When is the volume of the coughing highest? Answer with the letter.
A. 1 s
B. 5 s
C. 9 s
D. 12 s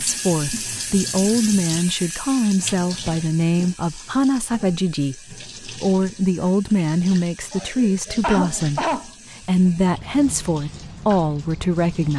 C.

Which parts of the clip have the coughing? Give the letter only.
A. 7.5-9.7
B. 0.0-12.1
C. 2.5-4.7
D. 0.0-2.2
A.